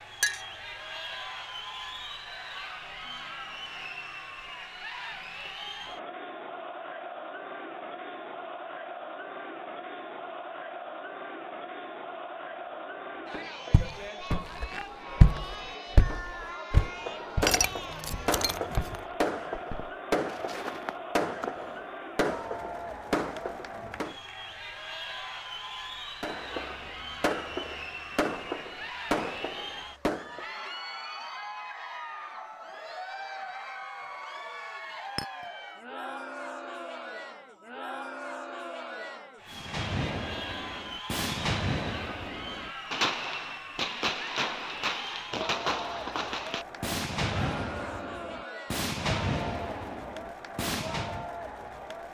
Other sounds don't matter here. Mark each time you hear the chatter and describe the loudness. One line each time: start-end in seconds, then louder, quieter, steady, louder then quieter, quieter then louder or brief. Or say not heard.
0.0-52.1 steady.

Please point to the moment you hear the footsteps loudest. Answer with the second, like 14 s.
15 s.